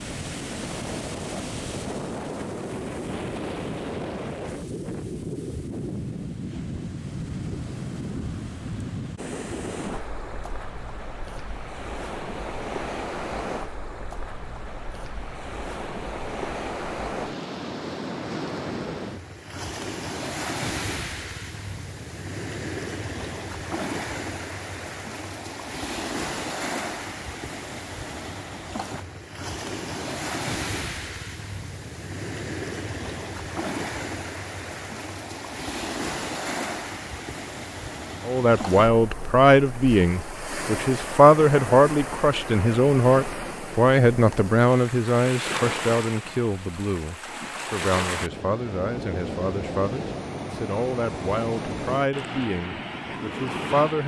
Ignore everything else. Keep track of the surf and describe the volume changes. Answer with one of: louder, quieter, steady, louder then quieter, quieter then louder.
steady.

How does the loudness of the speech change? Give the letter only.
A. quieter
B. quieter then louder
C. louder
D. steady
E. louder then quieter
A.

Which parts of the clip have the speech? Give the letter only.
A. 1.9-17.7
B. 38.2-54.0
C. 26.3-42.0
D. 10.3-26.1
B.